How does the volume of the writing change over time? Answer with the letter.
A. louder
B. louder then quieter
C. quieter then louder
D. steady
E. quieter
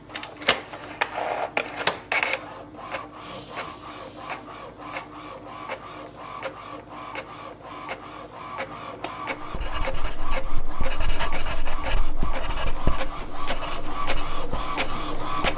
B.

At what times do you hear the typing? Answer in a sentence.
The typing can't be heard in this clip.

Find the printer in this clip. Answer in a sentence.
You can hear the printer from 0.0 to 15.5 s.